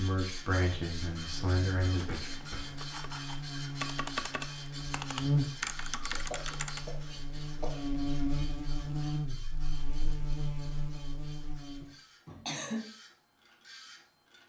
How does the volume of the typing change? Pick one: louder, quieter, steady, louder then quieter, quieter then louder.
louder.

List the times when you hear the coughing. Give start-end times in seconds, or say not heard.
1.9-2.9, 6.0-8.0, 11.8-12.8.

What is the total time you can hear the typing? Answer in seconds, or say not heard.
5 s.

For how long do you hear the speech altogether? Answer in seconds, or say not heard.
2 s.